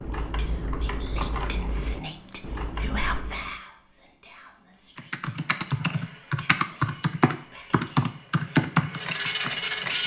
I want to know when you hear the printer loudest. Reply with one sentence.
The loudest moment of the printer is at 10 seconds.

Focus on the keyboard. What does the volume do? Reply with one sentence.
The volume of the keyboard goes up.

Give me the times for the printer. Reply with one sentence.
You can hear the printer from 5.3 to 10.0 s.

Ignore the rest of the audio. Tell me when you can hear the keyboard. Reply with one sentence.
You can hear the keyboard from 0.0 to 3.5 s and from 5.0 to 10.0 s.